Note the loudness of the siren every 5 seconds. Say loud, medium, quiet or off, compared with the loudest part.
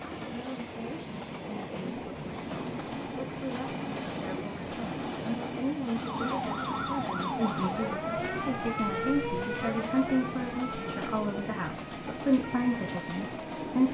off, loud, medium.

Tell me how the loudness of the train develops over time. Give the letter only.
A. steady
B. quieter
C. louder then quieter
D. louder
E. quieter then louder
A.